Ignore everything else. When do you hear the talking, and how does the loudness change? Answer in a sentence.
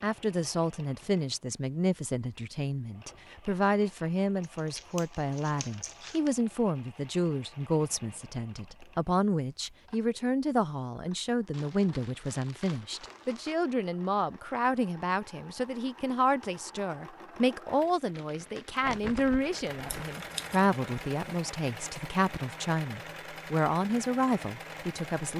You can hear the talking from 0.0 to 25.3 s, at a steady volume.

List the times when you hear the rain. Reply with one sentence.
You can't hear the rain here.